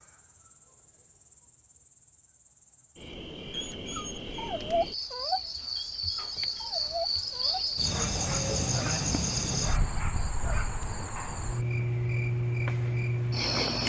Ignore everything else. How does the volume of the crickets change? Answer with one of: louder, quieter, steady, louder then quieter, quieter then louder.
louder.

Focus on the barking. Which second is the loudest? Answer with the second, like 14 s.
5 s.